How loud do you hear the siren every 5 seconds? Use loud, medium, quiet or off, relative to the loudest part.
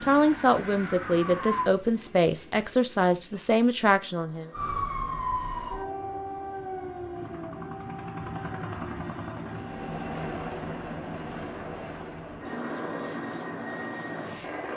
loud, loud, off.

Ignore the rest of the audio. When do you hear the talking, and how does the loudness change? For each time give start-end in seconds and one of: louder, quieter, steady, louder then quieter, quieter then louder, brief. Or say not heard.
0.0-4.5 steady.